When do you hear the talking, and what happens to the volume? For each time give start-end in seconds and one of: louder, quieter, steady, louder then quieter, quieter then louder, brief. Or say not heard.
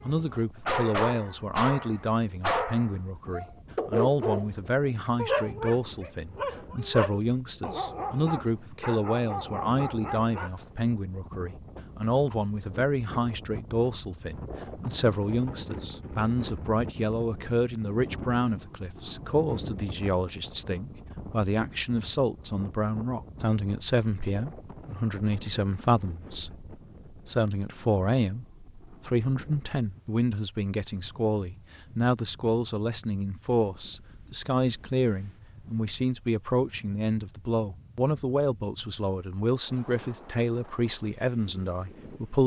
0.0-42.4 steady.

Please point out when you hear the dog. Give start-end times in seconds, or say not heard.
0.1-4.5, 5.2-10.6.